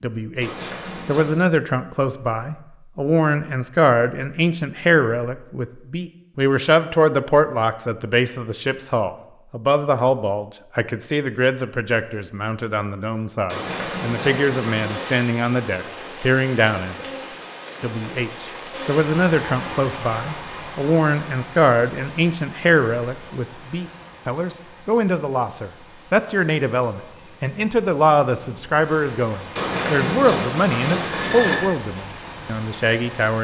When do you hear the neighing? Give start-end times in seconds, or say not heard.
0.4-1.4, 13.4-15.0, 29.6-31.6.